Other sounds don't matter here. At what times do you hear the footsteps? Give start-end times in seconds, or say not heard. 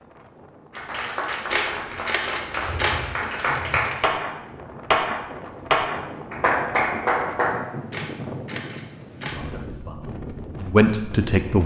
not heard.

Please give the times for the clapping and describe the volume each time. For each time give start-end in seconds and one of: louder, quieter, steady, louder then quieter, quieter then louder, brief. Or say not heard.
0.7-7.7 louder.